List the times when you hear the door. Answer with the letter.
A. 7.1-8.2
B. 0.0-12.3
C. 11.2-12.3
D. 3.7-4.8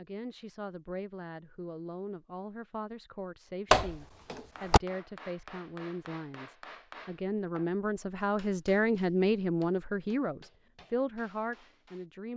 D.